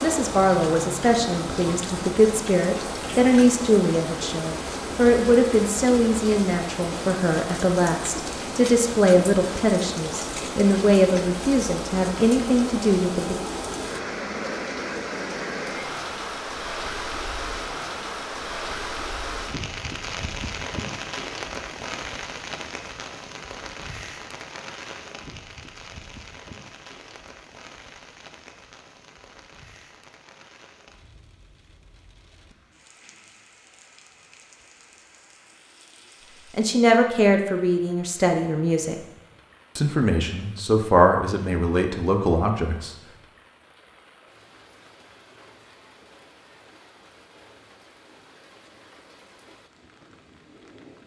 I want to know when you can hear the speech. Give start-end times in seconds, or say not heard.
0.0-13.4, 36.5-39.0, 39.8-43.0.